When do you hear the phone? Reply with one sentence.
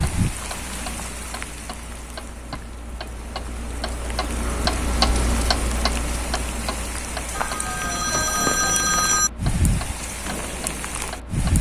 You can hear the phone from 7.3 to 9.3 s.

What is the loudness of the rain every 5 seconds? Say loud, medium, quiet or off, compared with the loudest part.
medium, loud, loud.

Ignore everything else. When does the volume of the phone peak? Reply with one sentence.
The loudest moment of the phone is at 9 seconds.